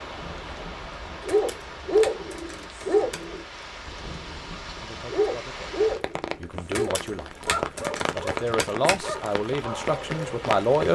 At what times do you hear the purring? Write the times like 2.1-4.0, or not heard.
not heard.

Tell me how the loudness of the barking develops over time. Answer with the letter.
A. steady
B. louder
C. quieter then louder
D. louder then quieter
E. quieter
E.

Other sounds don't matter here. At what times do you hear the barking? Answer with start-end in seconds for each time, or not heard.
0.1-10.3.